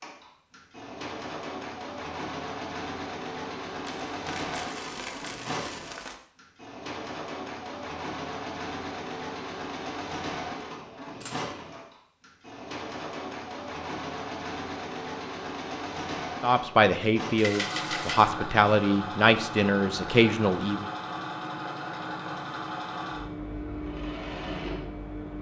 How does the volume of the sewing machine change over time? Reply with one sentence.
The loudness of the sewing machine stays about the same.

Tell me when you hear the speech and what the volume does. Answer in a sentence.
The speech can be heard from 16.4 to 20.9 s, at a steady volume.